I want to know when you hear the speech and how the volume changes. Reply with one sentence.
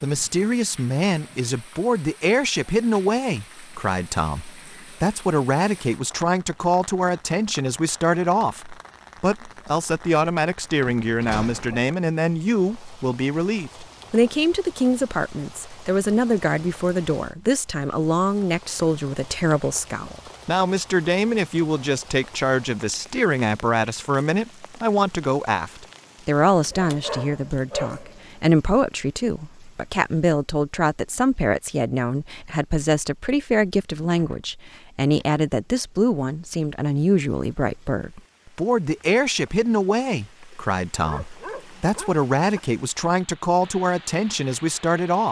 You can hear the speech from 0.0 to 45.2 s, at a steady volume.